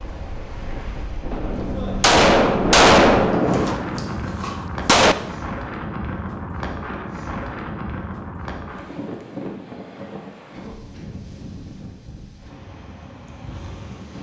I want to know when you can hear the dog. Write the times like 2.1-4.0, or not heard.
not heard.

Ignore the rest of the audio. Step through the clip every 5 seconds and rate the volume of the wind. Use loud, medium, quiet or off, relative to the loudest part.
loud, loud, medium.